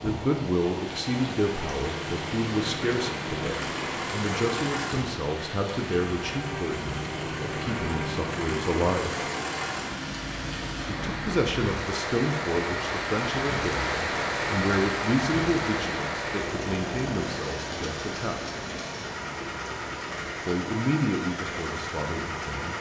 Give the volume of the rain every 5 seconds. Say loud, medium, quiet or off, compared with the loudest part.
medium, medium, loud, loud, medium.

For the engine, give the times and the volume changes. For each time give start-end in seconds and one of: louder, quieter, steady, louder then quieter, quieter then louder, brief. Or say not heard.
0.0-22.7 steady.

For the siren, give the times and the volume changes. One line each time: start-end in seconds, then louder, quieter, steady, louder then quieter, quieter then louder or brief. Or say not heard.
not heard.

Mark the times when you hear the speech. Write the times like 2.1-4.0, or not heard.
0.0-9.2, 10.8-18.4, 20.4-22.7.